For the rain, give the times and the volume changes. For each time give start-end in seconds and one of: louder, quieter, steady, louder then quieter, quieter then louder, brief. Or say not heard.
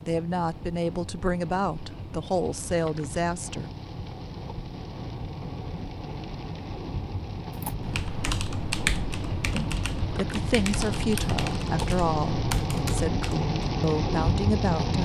0.0-15.0 louder.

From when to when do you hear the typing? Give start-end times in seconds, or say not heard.
7.6-13.6.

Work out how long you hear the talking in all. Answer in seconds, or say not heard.
9 s.